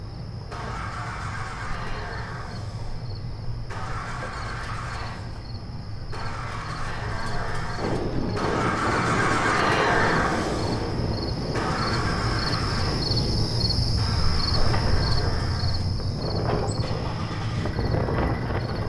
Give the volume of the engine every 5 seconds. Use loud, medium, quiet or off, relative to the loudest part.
medium, loud, loud, medium.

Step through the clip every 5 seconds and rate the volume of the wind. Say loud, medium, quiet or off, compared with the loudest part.
off, loud, loud, loud.